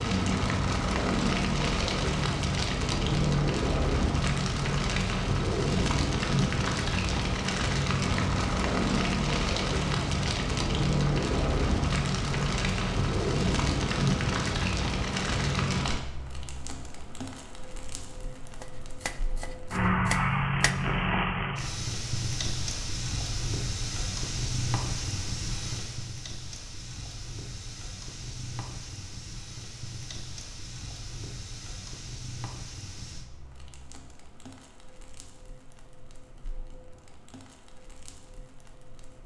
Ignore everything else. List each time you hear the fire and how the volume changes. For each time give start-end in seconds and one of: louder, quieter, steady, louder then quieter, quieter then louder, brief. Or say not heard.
0.0-39.2 quieter.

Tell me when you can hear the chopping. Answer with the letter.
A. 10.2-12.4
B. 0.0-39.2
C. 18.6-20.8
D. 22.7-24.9
C.